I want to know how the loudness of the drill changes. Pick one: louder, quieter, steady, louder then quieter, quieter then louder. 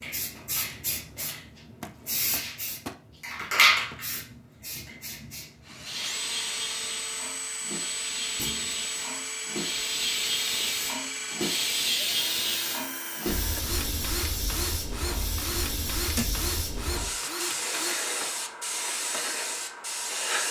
steady.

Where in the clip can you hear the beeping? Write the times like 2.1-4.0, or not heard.
not heard.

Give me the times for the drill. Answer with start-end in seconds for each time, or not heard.
5.7-18.0.